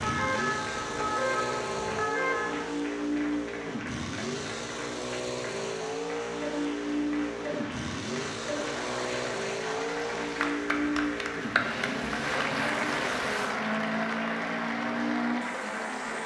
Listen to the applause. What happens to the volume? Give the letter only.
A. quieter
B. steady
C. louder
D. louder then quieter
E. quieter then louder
C.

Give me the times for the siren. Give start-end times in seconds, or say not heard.
0.0-2.6.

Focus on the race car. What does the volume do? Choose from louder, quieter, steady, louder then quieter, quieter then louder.
steady.